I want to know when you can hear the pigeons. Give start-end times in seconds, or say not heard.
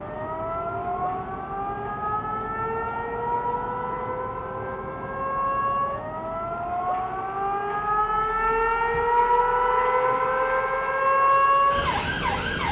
not heard.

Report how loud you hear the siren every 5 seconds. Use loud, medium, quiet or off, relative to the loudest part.
medium, loud, loud.